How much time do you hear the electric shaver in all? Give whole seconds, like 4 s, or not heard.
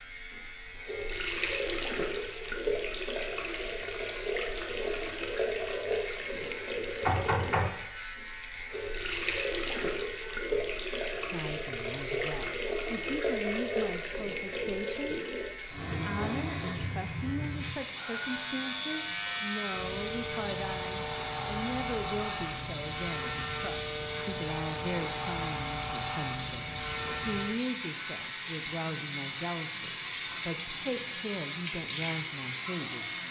33 s.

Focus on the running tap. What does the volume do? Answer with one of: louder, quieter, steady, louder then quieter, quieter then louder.
steady.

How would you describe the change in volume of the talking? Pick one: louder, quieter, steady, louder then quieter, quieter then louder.
steady.